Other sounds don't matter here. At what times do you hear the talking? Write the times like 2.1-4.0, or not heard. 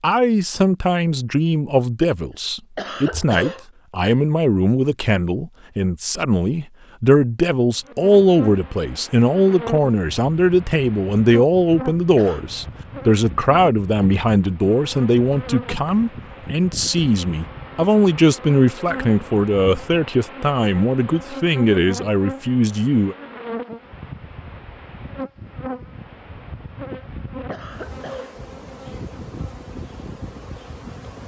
0.0-23.1.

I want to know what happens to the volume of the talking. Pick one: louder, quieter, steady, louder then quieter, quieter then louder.
steady.